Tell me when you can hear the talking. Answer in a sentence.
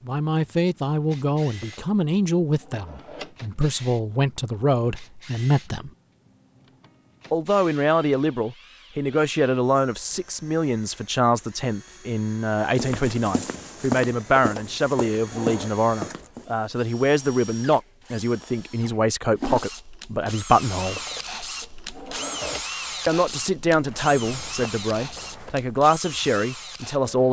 The talking can be heard from 0.1 to 5.9 s, from 7.3 to 21.0 s and from 23.1 to 27.2 s.